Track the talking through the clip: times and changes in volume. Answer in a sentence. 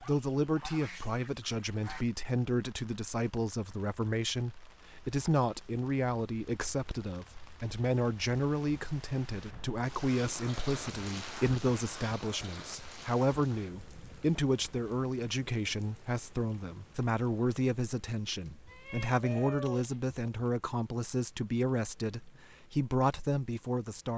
The talking can be heard from 0.0 to 24.1 s, at a steady volume.